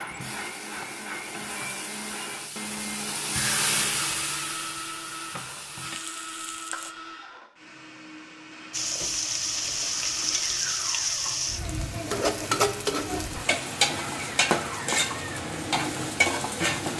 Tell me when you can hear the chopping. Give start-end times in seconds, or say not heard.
not heard.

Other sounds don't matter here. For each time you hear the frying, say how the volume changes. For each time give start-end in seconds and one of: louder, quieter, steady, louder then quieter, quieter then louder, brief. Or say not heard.
0.0-7.0 louder then quieter
8.7-16.9 steady.